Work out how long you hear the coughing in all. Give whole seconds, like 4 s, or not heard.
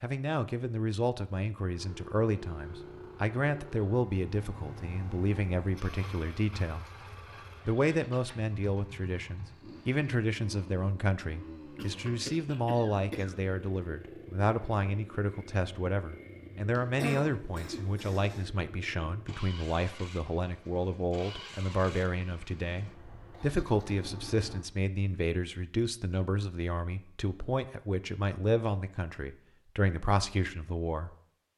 3 s.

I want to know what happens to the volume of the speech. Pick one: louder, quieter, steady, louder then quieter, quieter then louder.
steady.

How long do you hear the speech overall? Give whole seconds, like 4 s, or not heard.
31 s.